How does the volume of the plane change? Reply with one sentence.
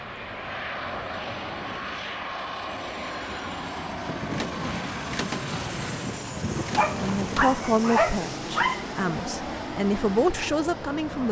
The volume of the plane stays about the same.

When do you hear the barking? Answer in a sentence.
You can hear the barking from 6.8 to 8.9 s.